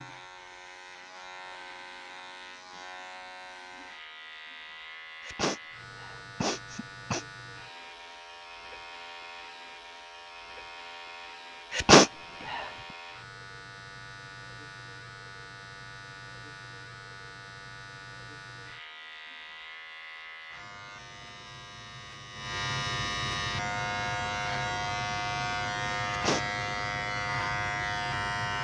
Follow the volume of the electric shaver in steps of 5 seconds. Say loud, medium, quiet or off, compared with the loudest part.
quiet, quiet, quiet, quiet, loud, loud.